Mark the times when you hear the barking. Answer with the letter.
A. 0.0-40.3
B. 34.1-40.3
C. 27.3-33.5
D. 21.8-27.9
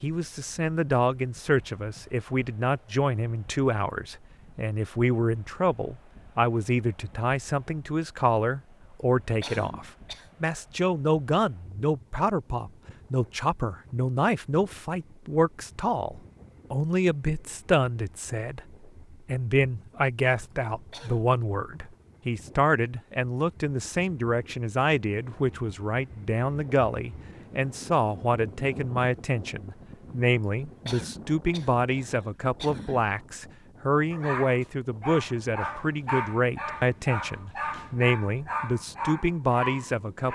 B.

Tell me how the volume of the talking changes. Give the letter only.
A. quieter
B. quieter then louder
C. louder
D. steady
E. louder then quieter
D.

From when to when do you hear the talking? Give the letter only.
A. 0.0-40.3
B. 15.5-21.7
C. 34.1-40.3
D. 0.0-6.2
A.